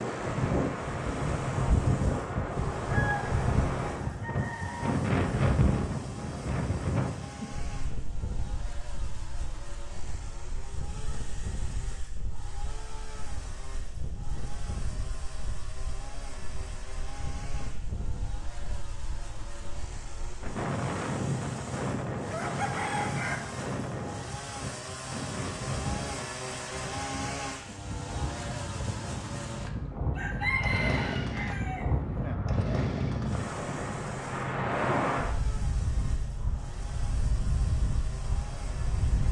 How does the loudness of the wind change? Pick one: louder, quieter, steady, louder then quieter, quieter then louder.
quieter then louder.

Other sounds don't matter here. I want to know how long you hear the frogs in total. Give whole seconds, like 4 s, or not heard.
not heard.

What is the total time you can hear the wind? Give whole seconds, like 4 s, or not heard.
39 s.